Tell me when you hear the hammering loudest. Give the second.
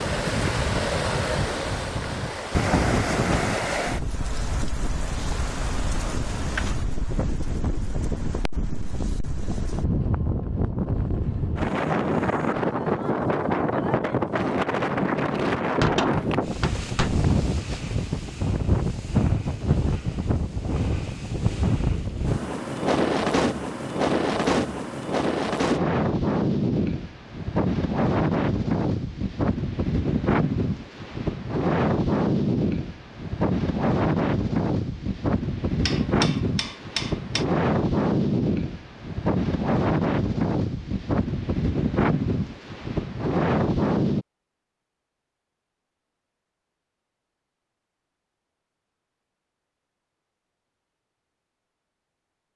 16 s.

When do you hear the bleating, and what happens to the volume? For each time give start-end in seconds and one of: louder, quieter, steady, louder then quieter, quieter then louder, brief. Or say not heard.
not heard.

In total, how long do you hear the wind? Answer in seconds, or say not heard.
44 s.